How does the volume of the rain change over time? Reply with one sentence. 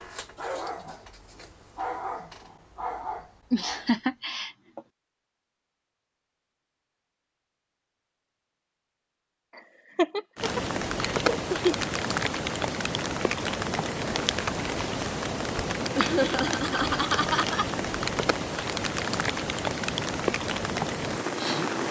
The volume of the rain stays about the same.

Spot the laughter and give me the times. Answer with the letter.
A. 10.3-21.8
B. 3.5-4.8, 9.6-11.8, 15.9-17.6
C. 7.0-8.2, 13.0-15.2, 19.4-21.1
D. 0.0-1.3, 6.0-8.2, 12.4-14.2
B.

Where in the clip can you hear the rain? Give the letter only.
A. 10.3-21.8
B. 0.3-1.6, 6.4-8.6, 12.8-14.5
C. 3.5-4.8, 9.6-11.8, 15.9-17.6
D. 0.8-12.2
A.